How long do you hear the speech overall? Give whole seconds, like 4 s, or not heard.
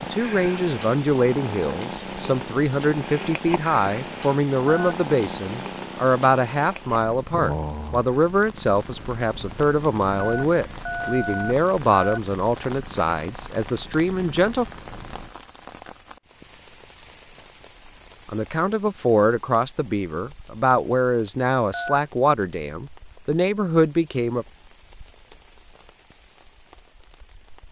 21 s.